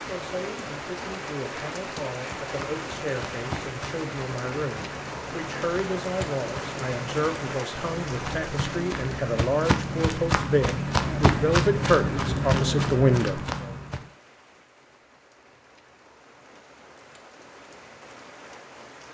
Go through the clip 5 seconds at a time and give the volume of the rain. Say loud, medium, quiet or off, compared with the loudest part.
loud, loud, medium, quiet.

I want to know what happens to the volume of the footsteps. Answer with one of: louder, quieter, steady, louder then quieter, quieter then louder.
louder.